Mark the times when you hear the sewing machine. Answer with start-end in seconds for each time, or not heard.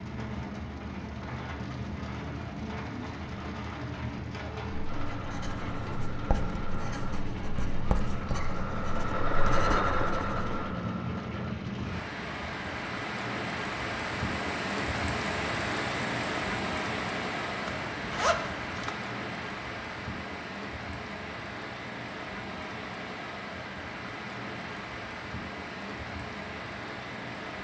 4.8-11.6.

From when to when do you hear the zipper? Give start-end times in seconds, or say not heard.
17.6-18.9.